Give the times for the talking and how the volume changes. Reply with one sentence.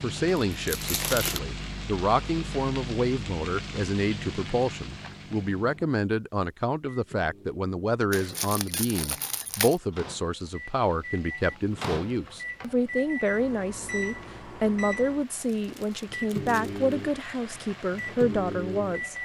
The talking can be heard from 0.0 to 19.1 s, at a steady volume.